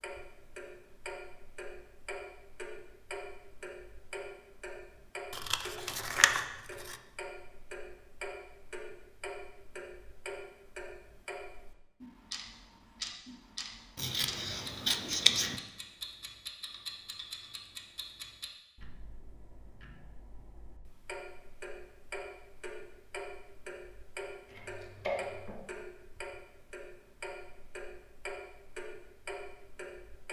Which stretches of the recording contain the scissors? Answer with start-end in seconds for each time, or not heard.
5.3-7.0, 13.9-15.6, 24.4-25.6.